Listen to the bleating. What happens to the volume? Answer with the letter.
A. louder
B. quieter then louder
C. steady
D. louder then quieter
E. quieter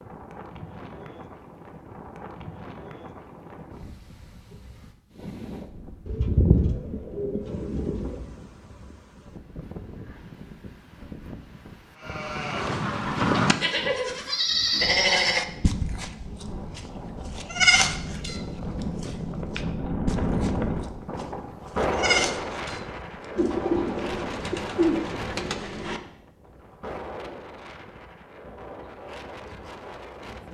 B.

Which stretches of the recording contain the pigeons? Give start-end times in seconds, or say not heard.
6.0-8.2, 23.4-26.0.